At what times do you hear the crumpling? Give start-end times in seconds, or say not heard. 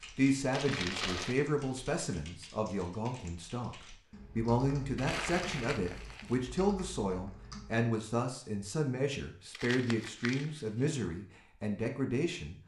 0.5-1.4, 5.0-6.5, 9.5-10.9.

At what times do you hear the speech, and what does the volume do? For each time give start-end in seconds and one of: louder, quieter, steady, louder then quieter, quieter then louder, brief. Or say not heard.
0.1-12.6 steady.